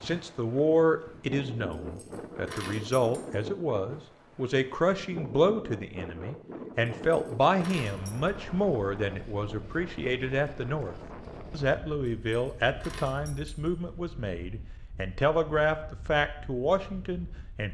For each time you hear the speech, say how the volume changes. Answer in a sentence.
The speech can be heard from 0.0 to 17.7 s, at a steady volume.